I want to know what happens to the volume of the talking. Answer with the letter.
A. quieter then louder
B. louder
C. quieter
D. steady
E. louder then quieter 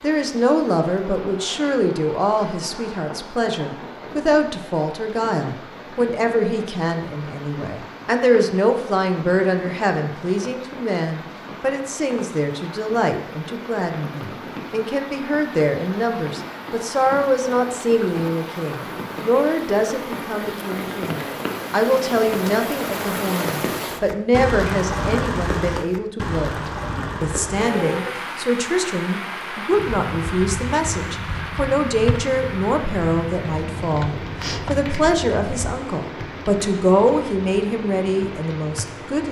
D.